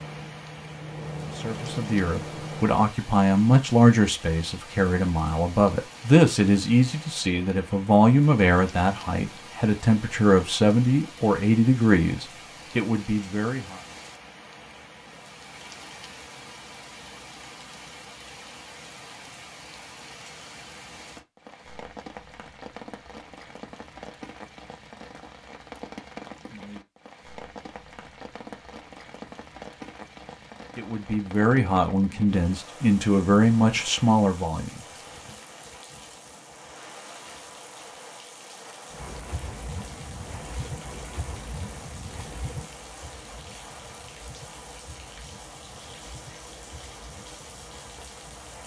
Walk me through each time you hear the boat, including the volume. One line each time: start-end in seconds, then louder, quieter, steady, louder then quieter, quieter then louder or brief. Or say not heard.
0.0-2.8 brief
38.9-48.6 quieter.